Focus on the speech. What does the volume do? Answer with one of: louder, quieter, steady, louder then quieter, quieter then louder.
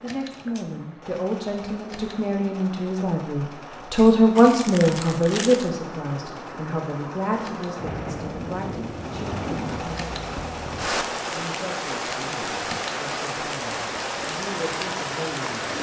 louder then quieter.